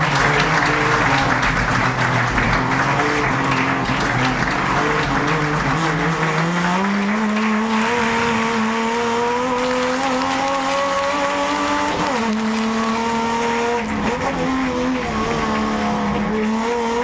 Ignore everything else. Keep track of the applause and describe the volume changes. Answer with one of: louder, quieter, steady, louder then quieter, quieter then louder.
quieter.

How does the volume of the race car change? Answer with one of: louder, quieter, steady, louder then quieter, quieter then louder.
steady.